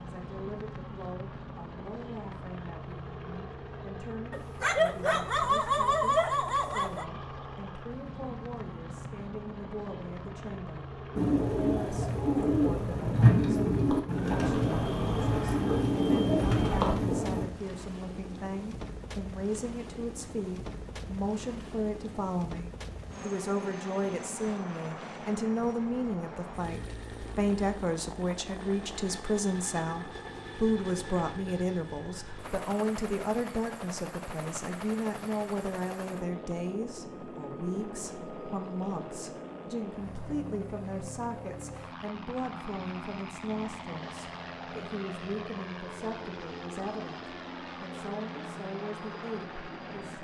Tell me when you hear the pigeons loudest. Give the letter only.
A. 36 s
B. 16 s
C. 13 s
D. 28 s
C.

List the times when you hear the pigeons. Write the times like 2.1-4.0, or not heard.
11.2-17.4.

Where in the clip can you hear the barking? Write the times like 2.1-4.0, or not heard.
4.3-7.0.